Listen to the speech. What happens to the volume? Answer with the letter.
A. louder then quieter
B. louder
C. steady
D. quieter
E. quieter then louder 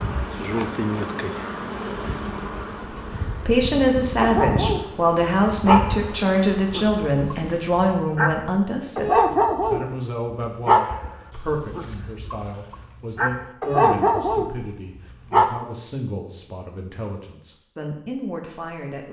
D.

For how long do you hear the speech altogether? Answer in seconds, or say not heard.
16 s.